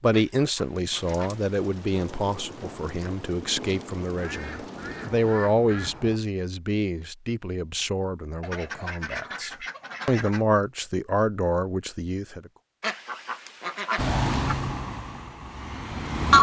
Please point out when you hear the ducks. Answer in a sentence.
You can hear the ducks from 0.1 to 1.4 s, from 4.2 to 6.2 s, from 8.4 to 10.4 s and from 12.8 to 14.6 s.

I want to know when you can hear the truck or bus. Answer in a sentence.
You can hear the truck or bus from 13.9 to 16.3 s.